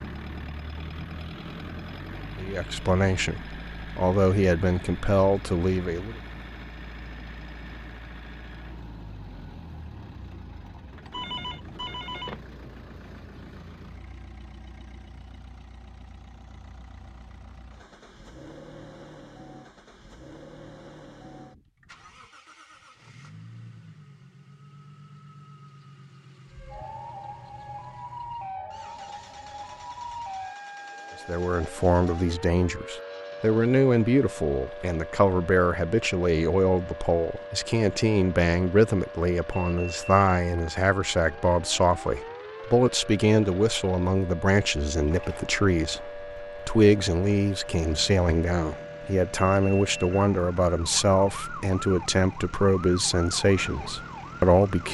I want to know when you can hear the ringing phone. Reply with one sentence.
You can hear the ringing phone from 11.1 to 12.4 s.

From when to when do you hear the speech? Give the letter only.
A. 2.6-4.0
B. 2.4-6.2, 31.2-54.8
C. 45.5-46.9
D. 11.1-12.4
B.